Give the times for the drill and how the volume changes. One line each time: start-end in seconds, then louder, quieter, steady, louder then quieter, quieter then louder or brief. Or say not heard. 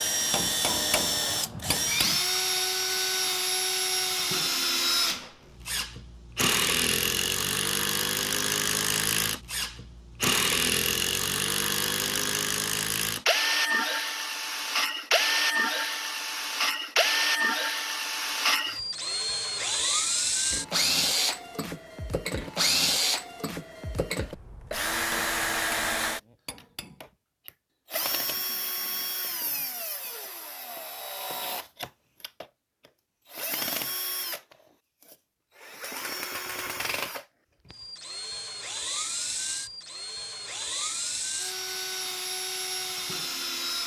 0.0-43.8 quieter.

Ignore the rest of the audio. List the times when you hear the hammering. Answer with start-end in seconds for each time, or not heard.
0.3-2.2, 25.1-27.1.